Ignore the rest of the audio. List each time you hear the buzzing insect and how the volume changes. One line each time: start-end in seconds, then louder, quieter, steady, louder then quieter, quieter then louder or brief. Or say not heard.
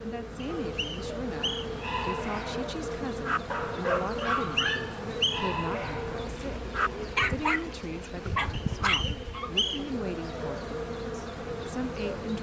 0.0-12.3 steady.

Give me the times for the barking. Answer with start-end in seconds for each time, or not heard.
1.6-7.7, 8.3-9.5.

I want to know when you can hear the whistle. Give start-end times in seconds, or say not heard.
0.6-1.9, 4.3-5.5, 8.5-9.9.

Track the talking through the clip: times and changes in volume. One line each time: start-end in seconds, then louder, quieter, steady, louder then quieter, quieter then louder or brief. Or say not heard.
0.0-12.3 steady.